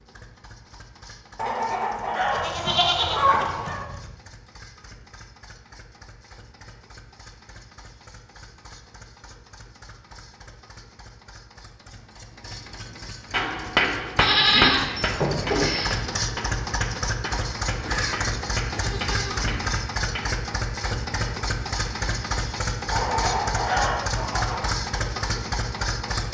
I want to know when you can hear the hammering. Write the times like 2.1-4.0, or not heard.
13.3-20.4.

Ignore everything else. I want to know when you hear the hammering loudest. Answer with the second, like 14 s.
14 s.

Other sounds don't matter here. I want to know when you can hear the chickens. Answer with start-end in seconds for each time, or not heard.
1.4-3.9, 22.9-24.8.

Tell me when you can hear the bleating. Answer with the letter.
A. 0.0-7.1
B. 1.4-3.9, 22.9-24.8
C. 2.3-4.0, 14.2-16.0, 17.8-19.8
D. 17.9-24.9
C.